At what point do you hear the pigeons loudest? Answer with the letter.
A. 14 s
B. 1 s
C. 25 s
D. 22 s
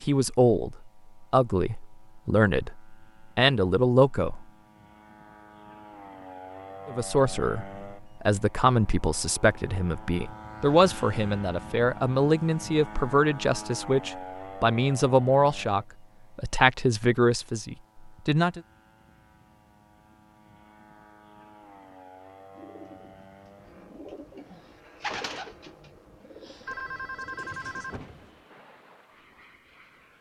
C.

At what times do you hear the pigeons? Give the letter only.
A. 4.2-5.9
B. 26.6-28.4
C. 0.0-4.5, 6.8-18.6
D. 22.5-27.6
D.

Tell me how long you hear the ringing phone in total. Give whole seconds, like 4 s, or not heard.
2 s.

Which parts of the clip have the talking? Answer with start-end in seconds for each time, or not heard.
0.0-4.5, 6.8-18.6.